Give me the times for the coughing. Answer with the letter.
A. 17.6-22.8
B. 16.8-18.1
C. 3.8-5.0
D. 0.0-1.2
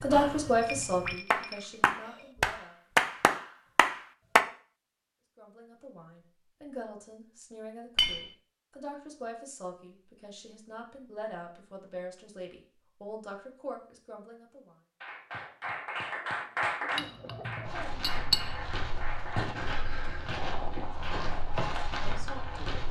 B.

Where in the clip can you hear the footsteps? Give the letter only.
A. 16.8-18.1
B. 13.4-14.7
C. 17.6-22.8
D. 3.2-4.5
C.